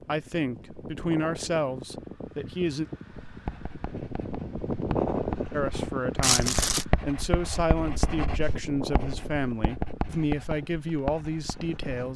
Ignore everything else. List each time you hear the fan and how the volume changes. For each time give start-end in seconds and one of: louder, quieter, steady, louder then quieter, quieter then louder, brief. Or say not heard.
0.0-12.1 louder then quieter.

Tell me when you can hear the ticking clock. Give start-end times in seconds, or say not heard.
not heard.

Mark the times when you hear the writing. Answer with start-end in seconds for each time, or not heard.
3.2-12.1.